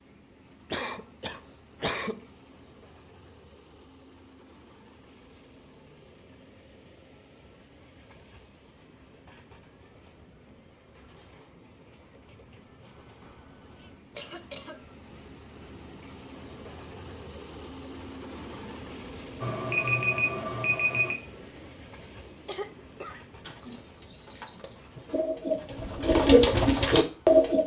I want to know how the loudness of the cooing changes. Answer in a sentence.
The volume of the cooing goes up.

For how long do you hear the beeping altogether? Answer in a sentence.
You can hear the beeping for 2 seconds altogether.